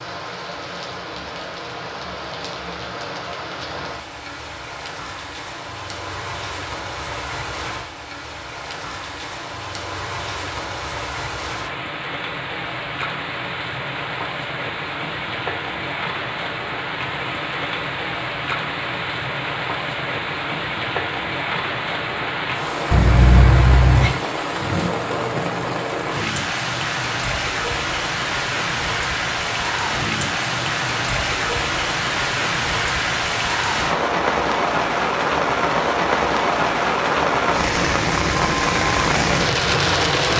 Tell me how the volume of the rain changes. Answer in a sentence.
The loudness of the rain goes up.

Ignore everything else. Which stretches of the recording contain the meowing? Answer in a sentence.
The meowing can be heard from 22.9 to 24.1 s.